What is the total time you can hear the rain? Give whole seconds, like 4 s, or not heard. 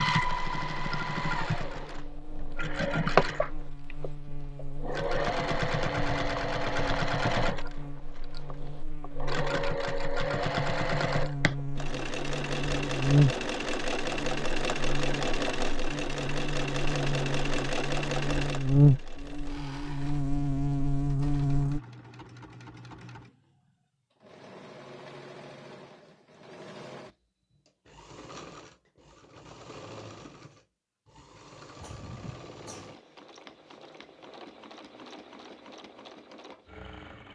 not heard.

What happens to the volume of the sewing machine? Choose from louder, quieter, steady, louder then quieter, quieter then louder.
quieter.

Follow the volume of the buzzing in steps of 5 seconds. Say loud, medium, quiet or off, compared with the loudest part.
quiet, quiet, loud, loud, loud, off, off, off.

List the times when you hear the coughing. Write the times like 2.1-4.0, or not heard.
31.7-33.0.